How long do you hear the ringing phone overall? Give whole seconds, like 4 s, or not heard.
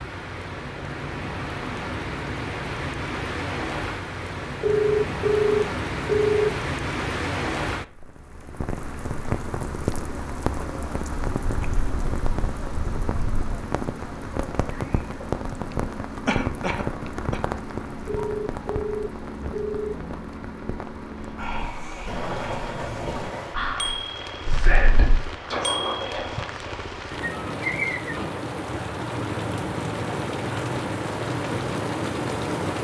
4 s.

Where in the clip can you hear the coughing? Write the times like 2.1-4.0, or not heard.
16.2-17.4.